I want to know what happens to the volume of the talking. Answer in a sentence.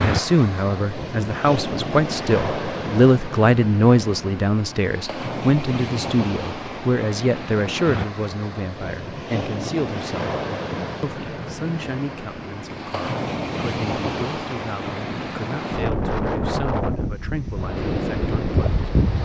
The loudness of the talking goes down.